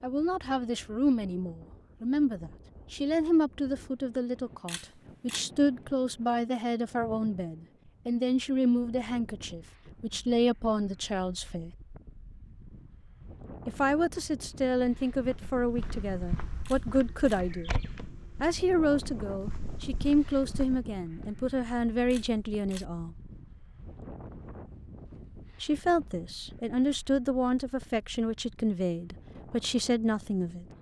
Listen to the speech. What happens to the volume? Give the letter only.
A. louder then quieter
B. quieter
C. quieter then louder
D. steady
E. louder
D.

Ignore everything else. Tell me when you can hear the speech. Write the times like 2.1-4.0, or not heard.
0.0-11.7, 13.7-17.8, 18.4-23.1, 25.6-30.6.